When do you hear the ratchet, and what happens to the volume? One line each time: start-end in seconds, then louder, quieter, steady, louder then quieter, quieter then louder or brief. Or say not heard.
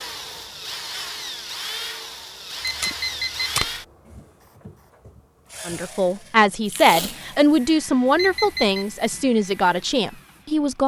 not heard.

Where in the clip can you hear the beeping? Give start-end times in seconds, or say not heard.
2.6-3.6, 8.2-8.8.